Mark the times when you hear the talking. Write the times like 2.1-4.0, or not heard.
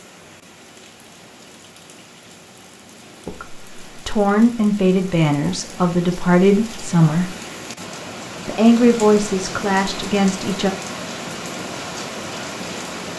3.2-7.3, 8.4-10.7.